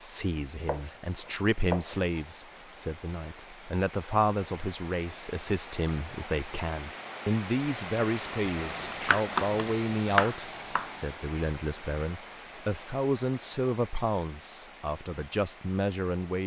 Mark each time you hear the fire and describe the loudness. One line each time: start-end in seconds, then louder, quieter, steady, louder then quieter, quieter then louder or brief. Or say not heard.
not heard.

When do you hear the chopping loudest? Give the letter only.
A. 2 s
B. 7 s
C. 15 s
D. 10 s
D.